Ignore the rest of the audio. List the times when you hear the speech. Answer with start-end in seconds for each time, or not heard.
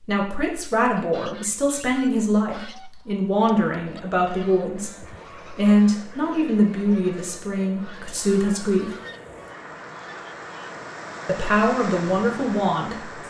0.1-8.9, 11.2-13.1.